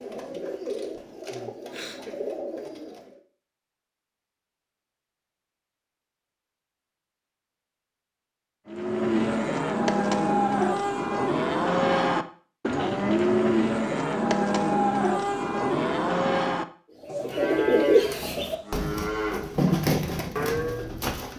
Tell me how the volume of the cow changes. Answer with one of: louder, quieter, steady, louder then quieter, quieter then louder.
quieter.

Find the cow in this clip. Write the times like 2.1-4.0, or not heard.
8.7-20.9.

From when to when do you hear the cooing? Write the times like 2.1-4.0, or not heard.
0.0-3.1, 17.0-21.3.